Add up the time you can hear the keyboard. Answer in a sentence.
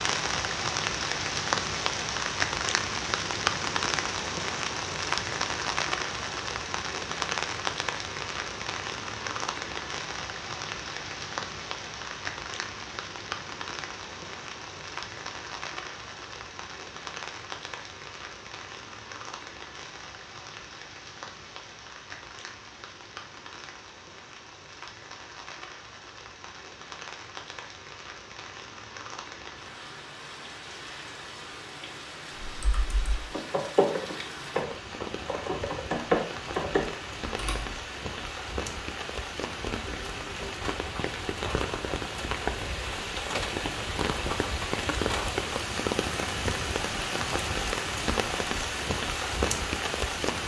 The keyboard can be heard for 5 seconds in total.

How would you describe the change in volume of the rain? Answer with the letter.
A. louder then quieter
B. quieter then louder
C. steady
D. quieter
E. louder
B.